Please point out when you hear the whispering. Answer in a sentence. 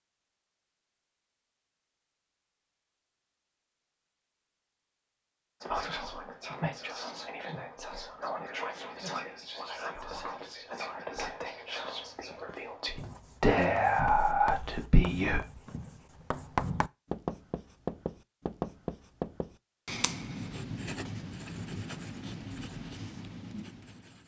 You can hear the whispering from 5.6 to 15.4 s.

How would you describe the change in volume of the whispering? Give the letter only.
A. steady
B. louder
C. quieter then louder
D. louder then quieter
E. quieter
B.